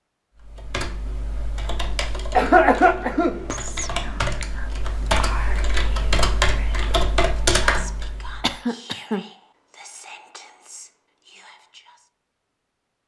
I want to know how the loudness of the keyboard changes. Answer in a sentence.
The volume of the keyboard goes up.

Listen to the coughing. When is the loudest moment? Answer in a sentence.
The volume of the coughing peaks at 3 seconds.